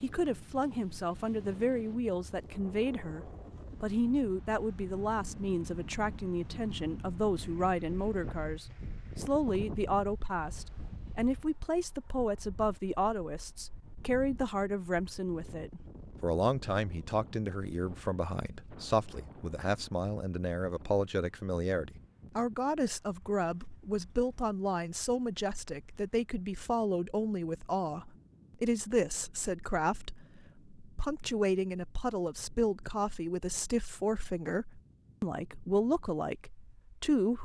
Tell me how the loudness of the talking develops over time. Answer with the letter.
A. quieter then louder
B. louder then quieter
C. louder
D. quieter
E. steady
E.